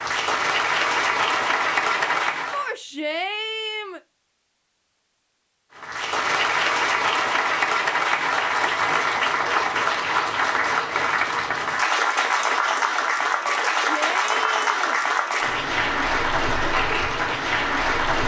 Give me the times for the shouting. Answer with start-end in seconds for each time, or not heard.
2.5-4.0, 13.4-15.0.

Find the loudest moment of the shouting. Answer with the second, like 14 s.
3 s.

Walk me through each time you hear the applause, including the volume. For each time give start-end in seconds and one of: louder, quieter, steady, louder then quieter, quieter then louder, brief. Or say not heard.
0.0-2.8 brief
5.8-18.2 steady.